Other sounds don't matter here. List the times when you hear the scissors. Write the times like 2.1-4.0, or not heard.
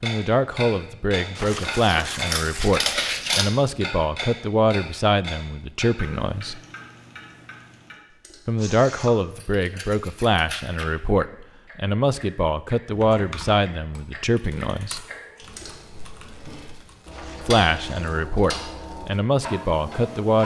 1.6-3.5, 9.1-10.8, 14.9-16.8.